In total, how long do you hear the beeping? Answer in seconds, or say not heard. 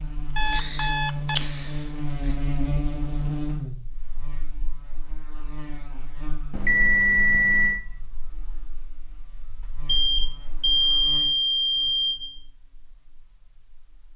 5 s.